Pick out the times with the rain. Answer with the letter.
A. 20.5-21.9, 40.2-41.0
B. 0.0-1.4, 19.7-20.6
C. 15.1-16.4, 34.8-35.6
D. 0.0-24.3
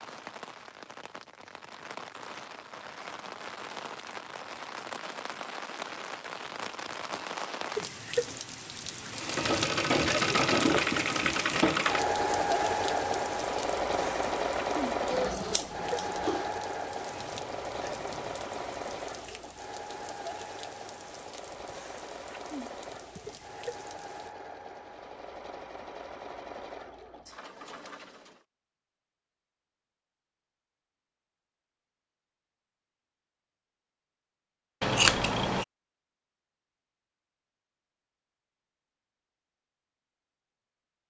D.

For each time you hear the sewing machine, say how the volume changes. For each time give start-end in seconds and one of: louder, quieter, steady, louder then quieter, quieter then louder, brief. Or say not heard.
9.1-28.4 quieter.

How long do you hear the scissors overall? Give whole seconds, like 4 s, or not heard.
2 s.